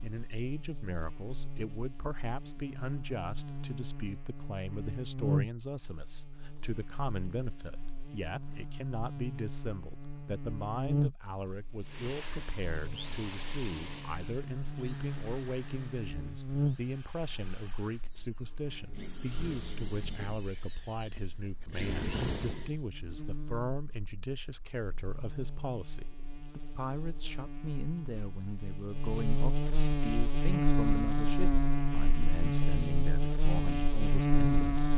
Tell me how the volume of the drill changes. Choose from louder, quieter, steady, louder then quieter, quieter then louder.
quieter then louder.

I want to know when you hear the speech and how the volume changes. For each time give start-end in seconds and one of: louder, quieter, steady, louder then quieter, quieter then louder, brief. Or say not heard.
0.0-34.9 steady.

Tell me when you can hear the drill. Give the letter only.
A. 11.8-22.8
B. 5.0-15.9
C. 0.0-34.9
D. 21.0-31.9
A.